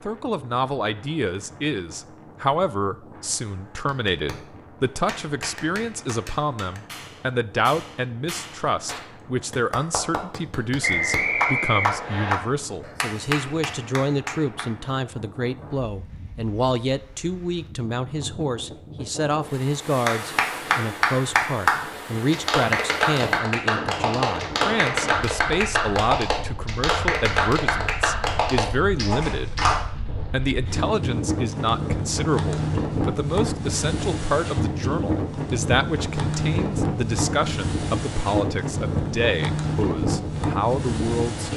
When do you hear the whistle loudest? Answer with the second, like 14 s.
11 s.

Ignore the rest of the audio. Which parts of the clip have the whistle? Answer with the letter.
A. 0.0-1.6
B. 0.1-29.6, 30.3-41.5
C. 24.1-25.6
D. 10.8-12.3
D.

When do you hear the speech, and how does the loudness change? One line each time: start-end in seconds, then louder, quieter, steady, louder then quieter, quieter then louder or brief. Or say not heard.
0.1-29.6 steady
30.3-41.5 steady.